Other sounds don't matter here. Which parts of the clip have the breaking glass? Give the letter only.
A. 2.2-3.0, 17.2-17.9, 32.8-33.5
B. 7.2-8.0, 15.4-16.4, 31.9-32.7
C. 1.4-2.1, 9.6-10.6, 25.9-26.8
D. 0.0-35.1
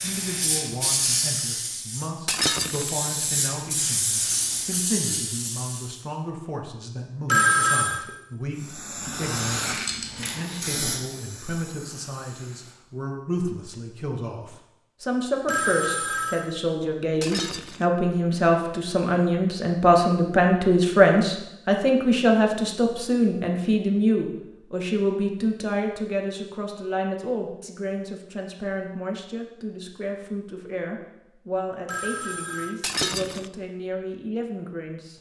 A.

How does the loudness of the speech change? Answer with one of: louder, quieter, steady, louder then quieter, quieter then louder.
louder then quieter.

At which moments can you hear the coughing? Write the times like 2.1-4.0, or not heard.
not heard.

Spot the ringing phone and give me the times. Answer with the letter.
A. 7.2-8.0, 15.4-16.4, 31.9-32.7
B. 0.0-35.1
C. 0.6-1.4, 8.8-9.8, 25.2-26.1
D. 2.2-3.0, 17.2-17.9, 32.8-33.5
A.